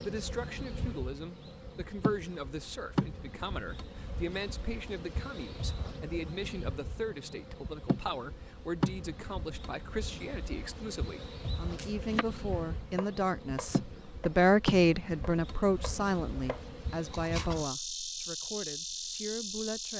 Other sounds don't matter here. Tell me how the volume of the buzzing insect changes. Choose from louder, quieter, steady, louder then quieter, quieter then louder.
steady.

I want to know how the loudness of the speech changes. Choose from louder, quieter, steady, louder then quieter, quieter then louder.
louder then quieter.